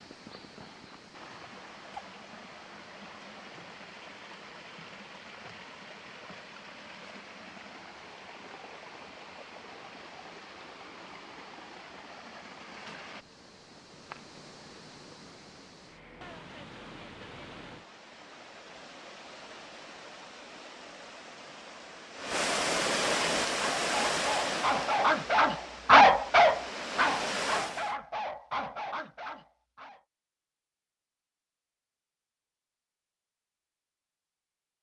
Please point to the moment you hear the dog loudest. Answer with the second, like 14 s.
26 s.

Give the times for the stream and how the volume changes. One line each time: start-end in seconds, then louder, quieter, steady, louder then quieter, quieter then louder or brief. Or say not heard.
0.0-27.9 louder.